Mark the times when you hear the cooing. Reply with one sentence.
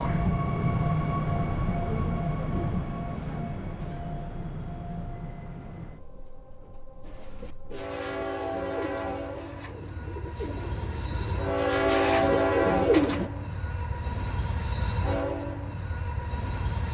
The cooing can be heard from 7.0 to 13.3 s.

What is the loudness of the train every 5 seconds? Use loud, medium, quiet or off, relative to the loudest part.
loud, medium, loud, medium.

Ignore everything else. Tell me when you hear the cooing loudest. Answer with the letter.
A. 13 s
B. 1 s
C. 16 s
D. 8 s
A.